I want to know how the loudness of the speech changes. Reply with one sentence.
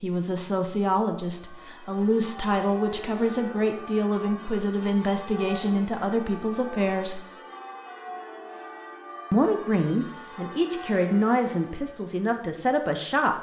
The loudness of the speech stays about the same.